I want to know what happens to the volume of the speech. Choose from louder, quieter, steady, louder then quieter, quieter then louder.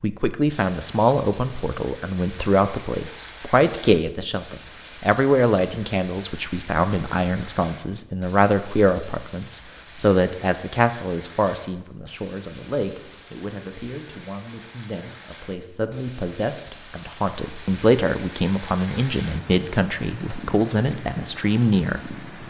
quieter then louder.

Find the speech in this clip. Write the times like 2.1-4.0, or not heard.
0.0-22.2.